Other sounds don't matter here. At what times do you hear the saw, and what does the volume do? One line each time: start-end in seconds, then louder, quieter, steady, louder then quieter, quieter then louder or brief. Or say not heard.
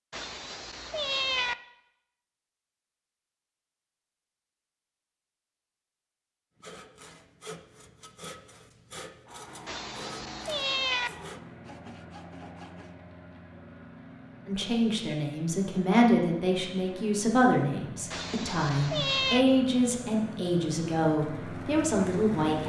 6.5-12.9 steady.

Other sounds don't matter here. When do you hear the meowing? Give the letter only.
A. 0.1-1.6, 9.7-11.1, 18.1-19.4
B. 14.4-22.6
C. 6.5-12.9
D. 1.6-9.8
A.